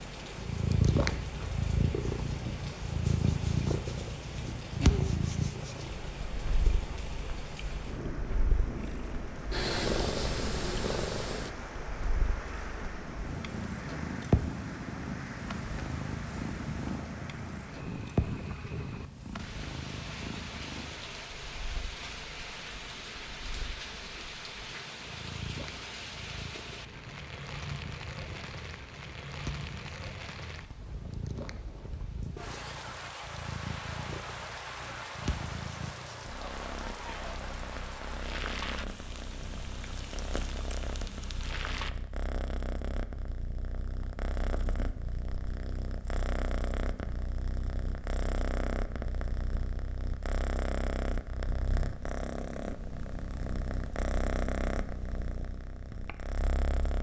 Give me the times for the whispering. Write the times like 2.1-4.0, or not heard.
not heard.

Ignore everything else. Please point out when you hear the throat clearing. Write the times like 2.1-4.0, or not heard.
not heard.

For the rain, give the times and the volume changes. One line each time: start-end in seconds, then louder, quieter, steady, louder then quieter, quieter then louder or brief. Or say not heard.
0.0-41.9 steady.